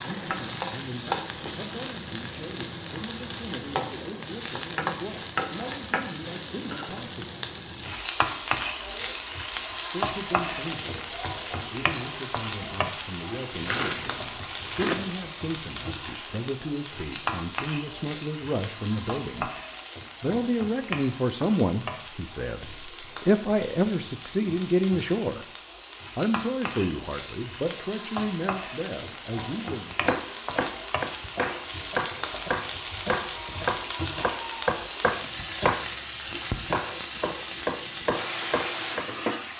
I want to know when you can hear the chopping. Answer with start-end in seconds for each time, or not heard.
29.9-39.1.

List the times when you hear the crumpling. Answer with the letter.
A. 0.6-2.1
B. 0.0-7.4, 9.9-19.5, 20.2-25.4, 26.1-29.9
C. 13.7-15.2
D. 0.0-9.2
C.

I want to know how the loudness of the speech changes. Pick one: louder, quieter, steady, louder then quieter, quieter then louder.
louder.